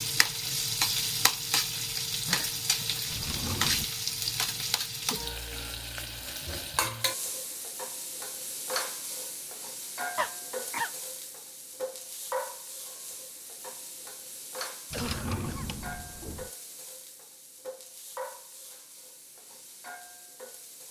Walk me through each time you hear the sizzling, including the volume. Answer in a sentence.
You can hear the sizzling from 0.0 to 20.8 s, getting quieter.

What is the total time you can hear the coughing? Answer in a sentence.
You can hear the coughing for 2 seconds altogether.